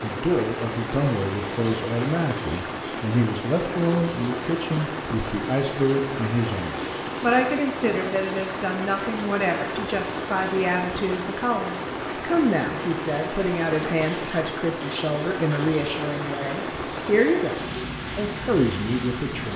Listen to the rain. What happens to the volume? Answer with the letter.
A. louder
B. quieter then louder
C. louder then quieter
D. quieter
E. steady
E.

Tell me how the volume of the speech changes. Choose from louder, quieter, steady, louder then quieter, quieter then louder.
steady.